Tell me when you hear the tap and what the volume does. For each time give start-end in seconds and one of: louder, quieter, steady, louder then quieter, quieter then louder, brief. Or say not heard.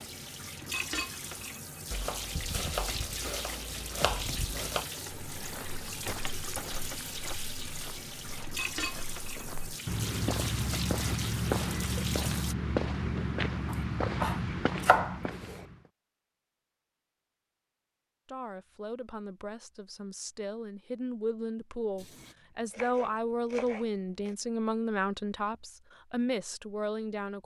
0.0-12.6 steady.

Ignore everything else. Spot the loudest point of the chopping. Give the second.
15 s.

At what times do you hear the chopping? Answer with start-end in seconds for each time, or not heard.
1.9-4.9, 13.7-15.7, 21.9-24.4.